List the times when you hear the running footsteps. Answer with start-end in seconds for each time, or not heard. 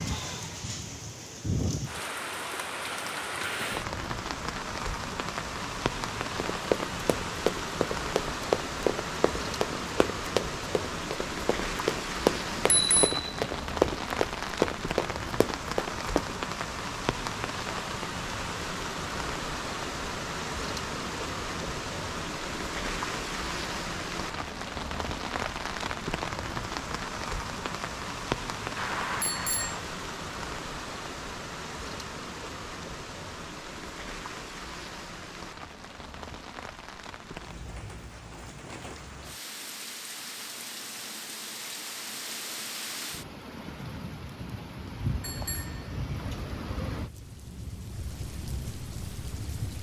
6.5-16.4.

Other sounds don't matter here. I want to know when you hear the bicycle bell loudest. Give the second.
13 s.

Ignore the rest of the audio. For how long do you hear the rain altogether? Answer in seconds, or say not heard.
50 s.